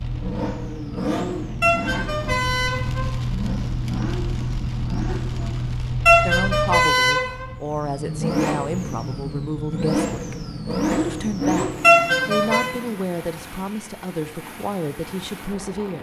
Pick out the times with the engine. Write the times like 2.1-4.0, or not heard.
0.0-5.8, 7.6-12.9.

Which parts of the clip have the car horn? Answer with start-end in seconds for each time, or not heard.
1.6-3.1, 6.0-7.5, 11.8-12.7.